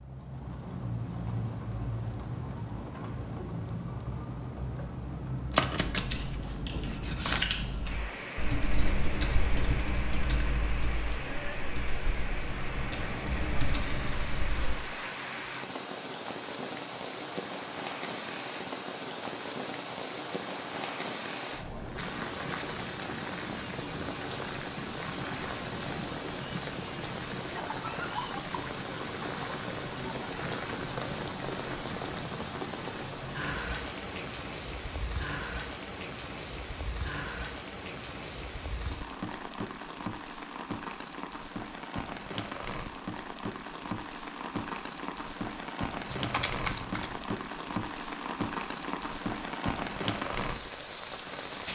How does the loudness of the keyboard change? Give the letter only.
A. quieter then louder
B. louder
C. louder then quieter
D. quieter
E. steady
A.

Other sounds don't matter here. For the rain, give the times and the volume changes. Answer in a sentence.
You can hear the rain from 0.0 to 51.7 s, at a steady volume.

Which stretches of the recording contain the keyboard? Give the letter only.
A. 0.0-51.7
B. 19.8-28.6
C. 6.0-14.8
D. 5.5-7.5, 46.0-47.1
C.